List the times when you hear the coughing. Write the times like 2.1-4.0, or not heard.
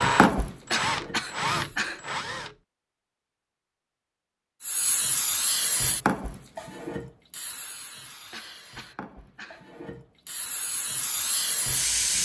0.7-2.0, 8.3-9.7.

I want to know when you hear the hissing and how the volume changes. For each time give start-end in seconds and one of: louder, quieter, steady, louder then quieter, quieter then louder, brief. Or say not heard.
0.0-1.8 brief
4.6-12.2 quieter then louder.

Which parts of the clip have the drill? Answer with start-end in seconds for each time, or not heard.
0.0-2.5.